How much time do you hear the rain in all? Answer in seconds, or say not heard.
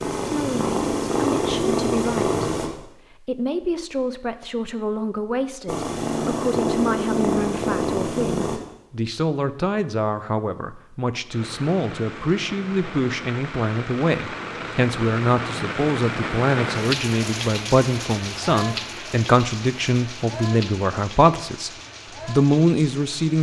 12 s.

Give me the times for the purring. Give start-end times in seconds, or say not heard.
0.0-2.7, 5.7-8.6.